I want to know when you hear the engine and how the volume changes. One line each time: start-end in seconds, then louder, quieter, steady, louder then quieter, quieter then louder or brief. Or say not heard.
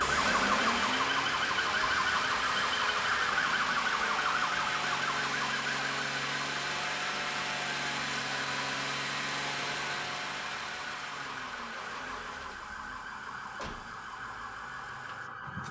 0.0-15.6 quieter.